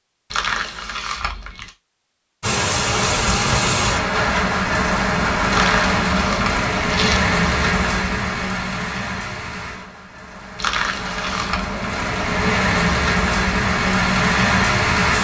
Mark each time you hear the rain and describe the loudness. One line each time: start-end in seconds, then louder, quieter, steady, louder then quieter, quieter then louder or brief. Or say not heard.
2.4-15.1 quieter then louder.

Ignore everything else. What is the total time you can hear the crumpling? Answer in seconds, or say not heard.
4 s.